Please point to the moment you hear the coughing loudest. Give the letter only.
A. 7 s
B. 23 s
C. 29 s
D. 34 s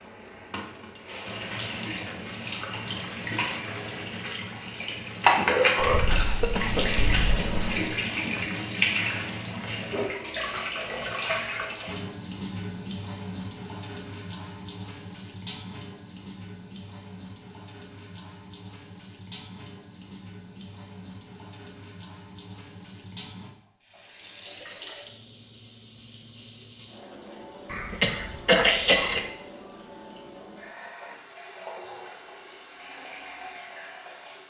C.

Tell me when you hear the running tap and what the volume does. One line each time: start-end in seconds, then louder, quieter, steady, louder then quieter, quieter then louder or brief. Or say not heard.
0.0-34.4 quieter.